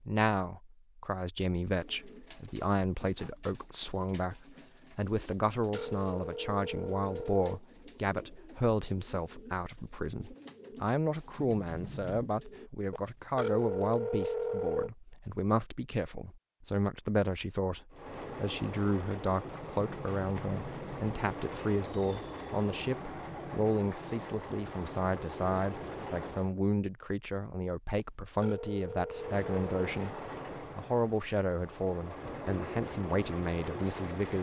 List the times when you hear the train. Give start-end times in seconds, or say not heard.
17.9-26.6, 29.1-34.3.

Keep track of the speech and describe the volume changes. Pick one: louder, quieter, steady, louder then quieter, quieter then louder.
steady.